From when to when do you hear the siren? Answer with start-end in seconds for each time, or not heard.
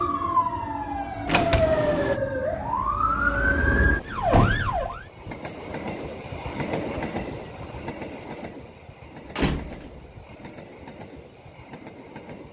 0.0-5.0.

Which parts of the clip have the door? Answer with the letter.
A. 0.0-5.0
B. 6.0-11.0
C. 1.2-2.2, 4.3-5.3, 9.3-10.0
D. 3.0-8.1
C.